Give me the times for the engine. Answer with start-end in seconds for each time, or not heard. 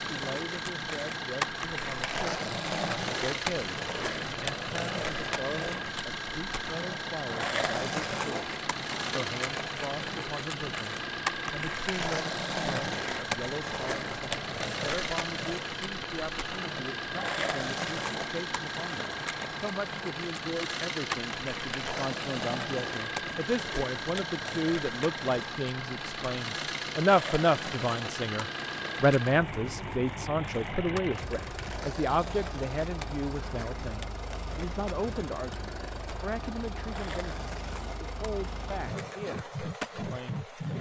0.0-40.7.